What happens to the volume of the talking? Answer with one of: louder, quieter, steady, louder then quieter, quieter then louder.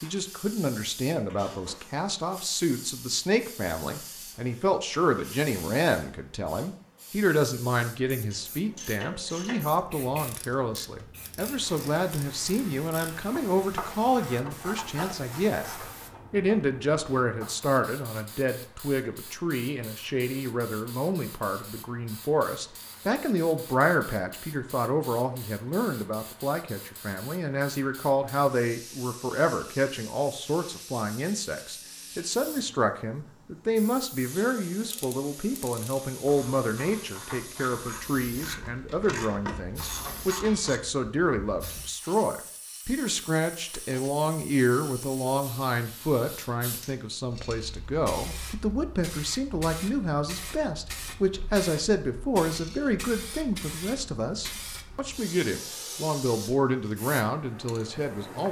steady.